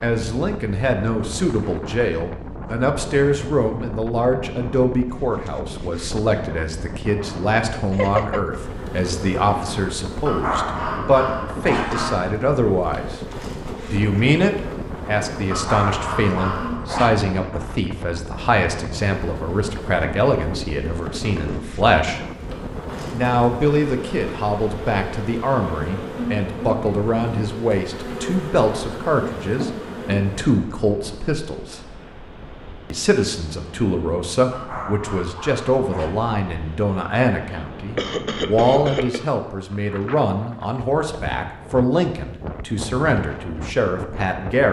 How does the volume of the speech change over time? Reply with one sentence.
The volume of the speech stays about the same.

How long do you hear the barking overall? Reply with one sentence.
You can hear the barking for 5 seconds altogether.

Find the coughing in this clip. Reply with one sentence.
You can hear the coughing from 7.9 to 8.6 s and from 37.5 to 39.4 s.